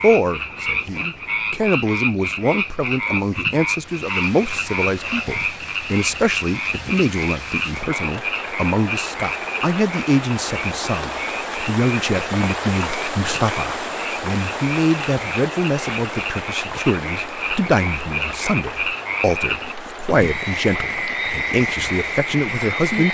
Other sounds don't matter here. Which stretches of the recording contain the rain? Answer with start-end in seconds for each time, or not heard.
3.7-23.0.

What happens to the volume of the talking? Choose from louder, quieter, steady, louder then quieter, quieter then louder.
steady.